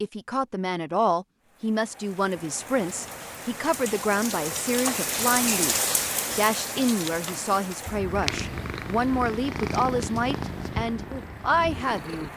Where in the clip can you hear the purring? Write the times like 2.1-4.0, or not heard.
8.1-12.3.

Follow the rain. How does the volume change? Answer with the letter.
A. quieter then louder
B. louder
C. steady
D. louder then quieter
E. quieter
D.